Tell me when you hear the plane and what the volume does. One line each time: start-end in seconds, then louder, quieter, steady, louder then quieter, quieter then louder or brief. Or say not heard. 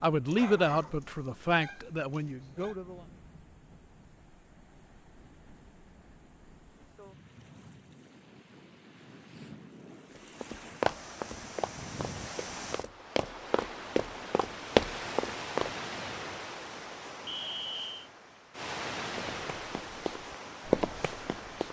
not heard.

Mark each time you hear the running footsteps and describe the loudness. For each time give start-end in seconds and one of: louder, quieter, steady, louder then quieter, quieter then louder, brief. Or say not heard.
10.2-15.7 quieter then louder
19.1-21.6 brief.